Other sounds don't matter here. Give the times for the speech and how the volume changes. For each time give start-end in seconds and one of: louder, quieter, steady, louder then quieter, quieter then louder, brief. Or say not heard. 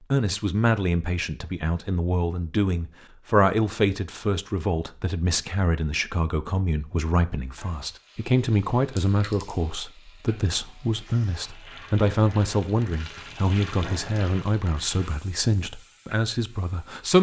0.1-17.1 steady.